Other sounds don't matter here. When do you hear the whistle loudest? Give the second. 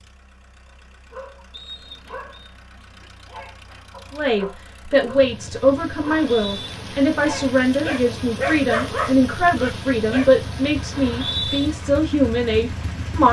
11 s.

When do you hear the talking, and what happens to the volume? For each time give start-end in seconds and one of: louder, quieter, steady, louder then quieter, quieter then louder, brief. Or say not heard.
4.2-13.2 steady.